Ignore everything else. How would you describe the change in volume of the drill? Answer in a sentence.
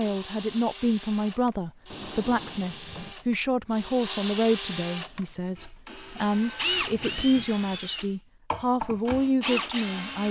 The loudness of the drill goes up.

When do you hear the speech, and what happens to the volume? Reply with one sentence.
The speech can be heard from 0.0 to 10.2 s, at a steady volume.